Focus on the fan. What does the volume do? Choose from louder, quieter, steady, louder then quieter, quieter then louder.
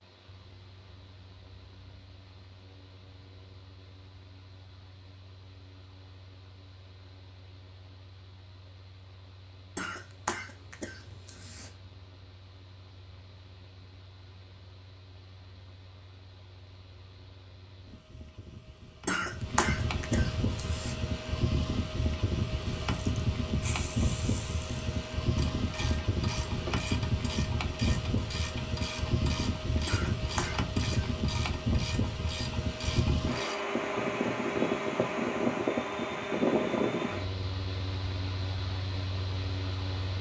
louder.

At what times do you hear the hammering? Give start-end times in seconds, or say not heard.
not heard.